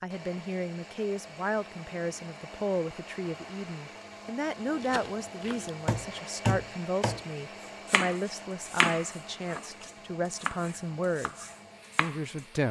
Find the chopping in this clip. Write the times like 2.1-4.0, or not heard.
4.8-12.2.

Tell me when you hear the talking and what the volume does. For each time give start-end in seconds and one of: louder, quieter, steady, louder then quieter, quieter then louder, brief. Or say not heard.
0.0-12.6 steady.